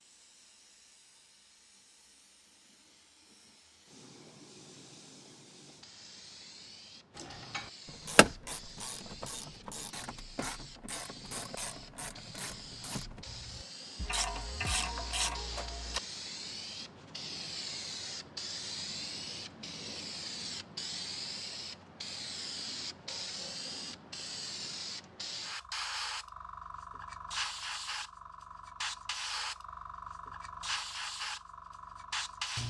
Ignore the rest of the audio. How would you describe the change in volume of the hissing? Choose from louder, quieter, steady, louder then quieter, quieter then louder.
louder.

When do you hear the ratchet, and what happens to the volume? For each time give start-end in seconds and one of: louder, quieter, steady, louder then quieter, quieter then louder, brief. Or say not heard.
7.2-16.0 quieter then louder.